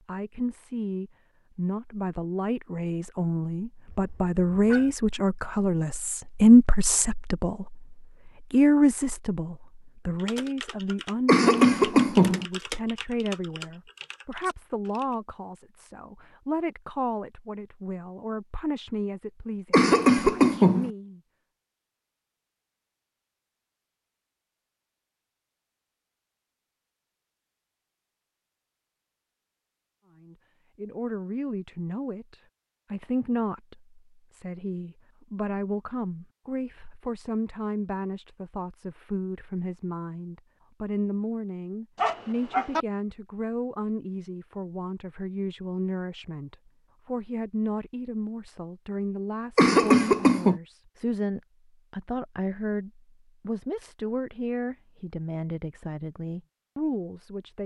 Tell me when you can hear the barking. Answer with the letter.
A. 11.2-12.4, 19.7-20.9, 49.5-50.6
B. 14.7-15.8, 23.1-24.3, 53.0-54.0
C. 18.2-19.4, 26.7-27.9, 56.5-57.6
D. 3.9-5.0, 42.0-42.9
D.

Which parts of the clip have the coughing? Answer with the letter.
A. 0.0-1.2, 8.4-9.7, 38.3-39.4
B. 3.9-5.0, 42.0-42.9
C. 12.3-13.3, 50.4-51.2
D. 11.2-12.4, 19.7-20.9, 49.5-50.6
D.